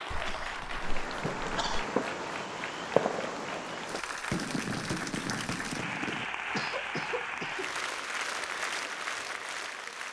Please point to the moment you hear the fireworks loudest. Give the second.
3 s.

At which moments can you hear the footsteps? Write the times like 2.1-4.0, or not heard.
not heard.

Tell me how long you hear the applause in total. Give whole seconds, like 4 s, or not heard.
10 s.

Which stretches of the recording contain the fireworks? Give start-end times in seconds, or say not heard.
0.8-6.3.